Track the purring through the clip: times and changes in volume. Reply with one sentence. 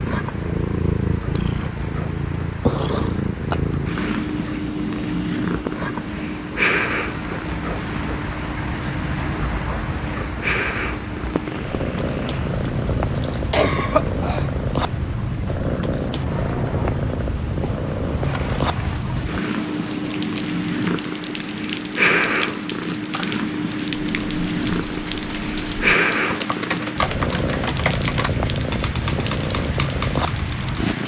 The purring can be heard from 0.0 to 31.0 s, at a steady volume.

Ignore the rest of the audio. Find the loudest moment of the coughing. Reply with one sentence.
The volume of the coughing peaks at 14 seconds.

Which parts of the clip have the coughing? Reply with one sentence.
You can hear the coughing from 12.5 to 14.5 s.